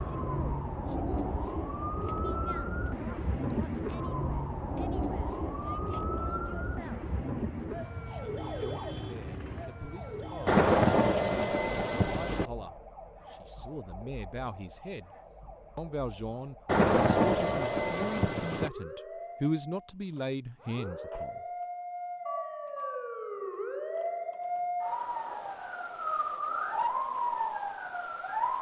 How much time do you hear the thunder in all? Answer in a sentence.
You can hear the thunder for 4 seconds altogether.